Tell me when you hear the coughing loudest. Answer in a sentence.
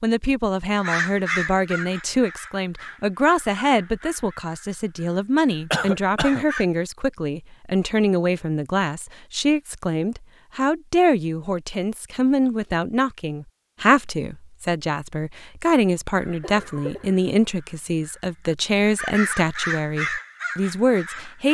The volume of the coughing peaks at 6 seconds.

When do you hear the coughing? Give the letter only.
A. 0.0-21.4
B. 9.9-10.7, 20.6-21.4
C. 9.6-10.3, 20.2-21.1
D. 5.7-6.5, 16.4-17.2
D.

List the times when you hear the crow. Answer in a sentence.
You can hear the crow from 0.8 to 6.7 s and from 16.1 to 21.4 s.